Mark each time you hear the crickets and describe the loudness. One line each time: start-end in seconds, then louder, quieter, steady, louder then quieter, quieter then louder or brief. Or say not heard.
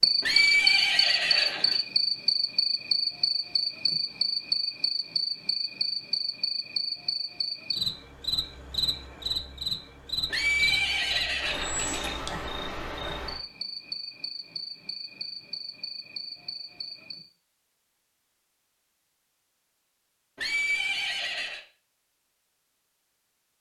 0.0-17.3 quieter.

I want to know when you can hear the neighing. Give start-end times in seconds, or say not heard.
0.2-1.8, 10.3-12.2, 20.4-21.6.